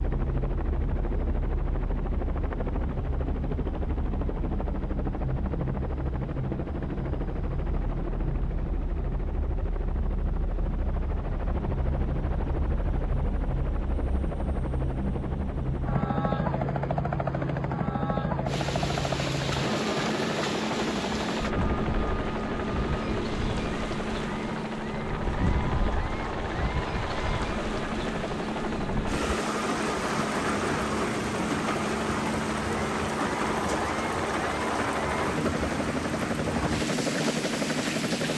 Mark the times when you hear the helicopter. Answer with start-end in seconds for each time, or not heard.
0.0-38.3.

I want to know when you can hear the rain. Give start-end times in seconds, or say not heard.
18.4-38.3.